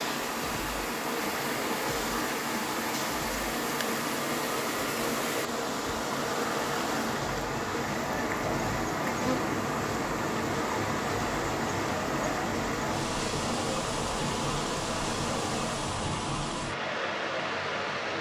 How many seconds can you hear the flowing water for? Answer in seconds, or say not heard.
18 s.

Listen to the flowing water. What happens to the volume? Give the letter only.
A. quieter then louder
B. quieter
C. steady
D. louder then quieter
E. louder
C.